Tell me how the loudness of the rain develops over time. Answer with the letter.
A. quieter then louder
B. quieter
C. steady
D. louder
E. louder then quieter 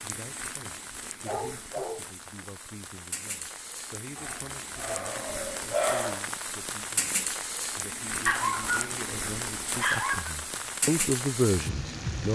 D.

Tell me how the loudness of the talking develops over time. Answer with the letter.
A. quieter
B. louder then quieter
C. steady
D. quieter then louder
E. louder
E.